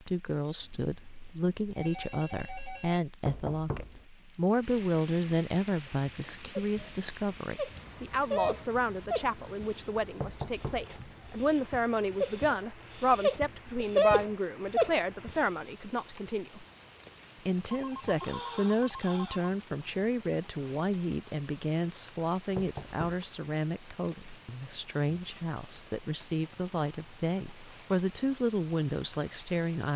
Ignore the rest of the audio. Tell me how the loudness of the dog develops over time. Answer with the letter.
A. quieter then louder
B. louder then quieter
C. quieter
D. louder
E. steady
A.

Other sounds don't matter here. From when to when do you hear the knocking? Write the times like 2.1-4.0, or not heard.
3.2-4.0, 10.2-10.9, 22.6-23.2.